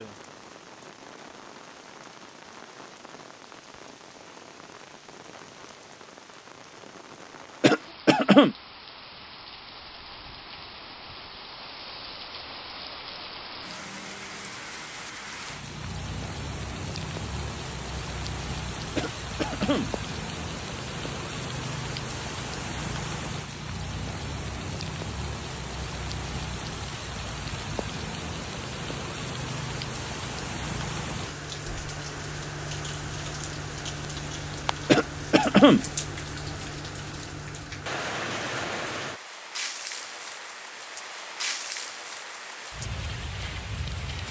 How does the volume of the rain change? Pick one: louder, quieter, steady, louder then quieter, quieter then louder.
louder.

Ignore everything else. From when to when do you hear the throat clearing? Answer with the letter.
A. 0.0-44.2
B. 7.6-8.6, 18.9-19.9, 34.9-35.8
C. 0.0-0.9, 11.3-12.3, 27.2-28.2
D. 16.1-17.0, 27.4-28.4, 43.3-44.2
B.